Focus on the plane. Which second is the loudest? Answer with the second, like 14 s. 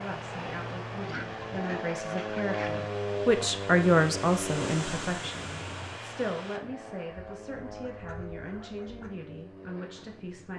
3 s.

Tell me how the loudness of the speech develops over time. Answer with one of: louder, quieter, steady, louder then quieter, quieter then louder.
louder then quieter.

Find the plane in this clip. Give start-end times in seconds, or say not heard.
0.0-10.5.